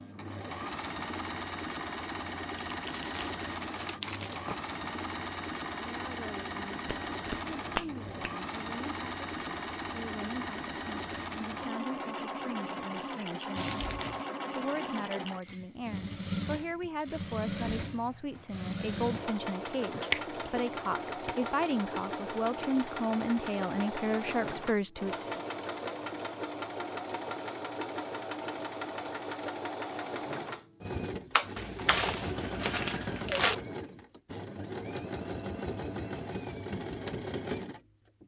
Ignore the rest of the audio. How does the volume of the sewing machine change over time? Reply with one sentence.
The loudness of the sewing machine stays about the same.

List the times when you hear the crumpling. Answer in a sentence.
The crumpling can be heard from 2.7 to 4.5 s, from 13.6 to 14.2 s and from 31.6 to 33.5 s.